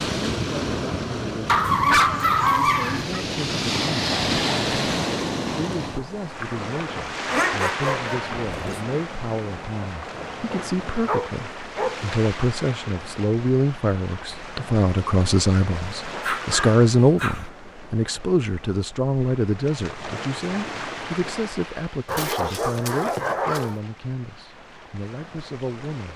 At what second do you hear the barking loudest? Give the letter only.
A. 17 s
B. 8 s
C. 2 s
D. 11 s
C.